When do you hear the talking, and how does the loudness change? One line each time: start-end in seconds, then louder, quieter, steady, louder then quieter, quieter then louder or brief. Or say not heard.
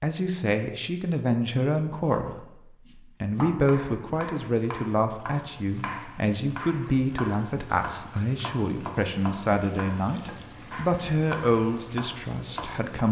0.0-13.0 steady.